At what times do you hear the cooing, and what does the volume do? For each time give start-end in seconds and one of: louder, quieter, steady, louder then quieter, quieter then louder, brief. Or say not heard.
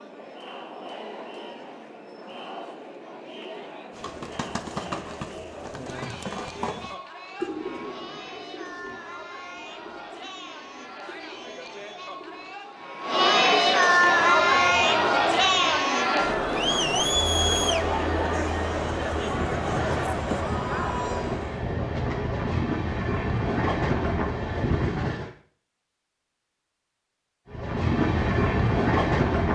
3.9-12.6 quieter.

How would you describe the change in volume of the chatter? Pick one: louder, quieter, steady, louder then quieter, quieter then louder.
louder then quieter.